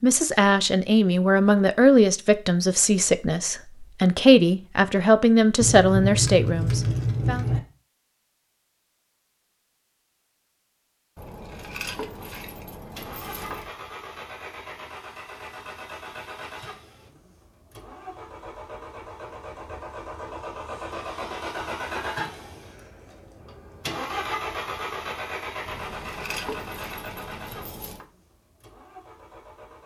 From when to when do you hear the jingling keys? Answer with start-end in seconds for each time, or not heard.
5.6-7.6, 11.2-13.7, 25.6-28.1.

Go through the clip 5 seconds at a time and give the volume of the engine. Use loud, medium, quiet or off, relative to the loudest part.
off, off, medium, medium, loud, medium.